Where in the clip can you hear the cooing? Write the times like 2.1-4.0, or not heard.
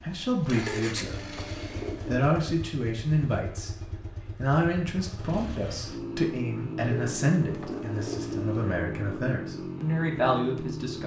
0.6-2.3, 6.8-8.6.